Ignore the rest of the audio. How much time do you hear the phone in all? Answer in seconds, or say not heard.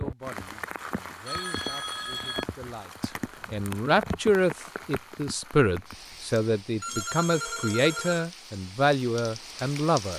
3 s.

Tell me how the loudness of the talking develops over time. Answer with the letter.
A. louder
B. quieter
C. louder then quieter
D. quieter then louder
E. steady
A.